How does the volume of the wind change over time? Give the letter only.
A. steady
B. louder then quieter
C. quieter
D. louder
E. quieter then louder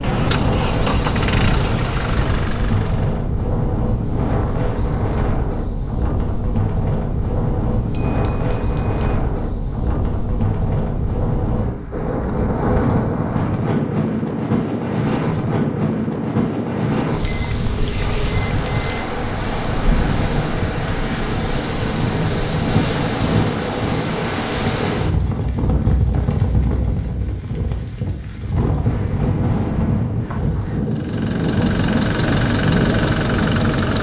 A.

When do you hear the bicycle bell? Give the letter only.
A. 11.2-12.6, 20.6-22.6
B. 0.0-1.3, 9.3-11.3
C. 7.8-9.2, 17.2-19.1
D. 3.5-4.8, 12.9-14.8
C.